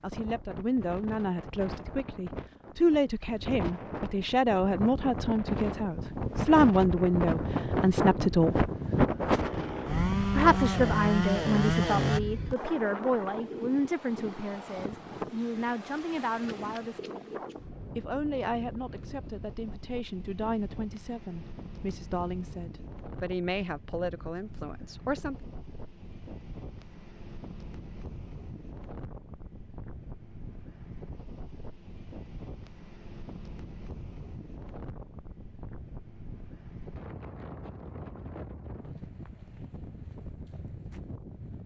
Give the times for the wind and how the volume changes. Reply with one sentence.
The wind can be heard from 0.0 to 41.6 s, getting quieter.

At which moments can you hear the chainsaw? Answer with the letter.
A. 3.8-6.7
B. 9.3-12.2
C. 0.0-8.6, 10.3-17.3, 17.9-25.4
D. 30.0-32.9
B.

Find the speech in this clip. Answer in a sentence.
The speech can be heard from 0.0 to 8.6 s, from 10.3 to 17.3 s and from 17.9 to 25.4 s.